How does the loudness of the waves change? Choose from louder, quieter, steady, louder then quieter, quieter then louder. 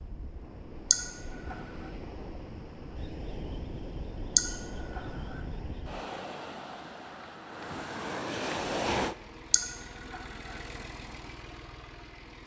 louder.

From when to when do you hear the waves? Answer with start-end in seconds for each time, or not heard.
0.0-9.2.